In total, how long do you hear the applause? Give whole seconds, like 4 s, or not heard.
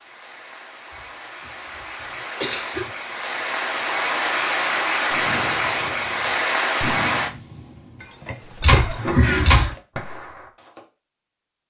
7 s.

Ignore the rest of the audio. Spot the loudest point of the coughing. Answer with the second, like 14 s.
9 s.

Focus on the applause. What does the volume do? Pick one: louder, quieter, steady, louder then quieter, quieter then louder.
louder.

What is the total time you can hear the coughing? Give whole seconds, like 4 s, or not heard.
3 s.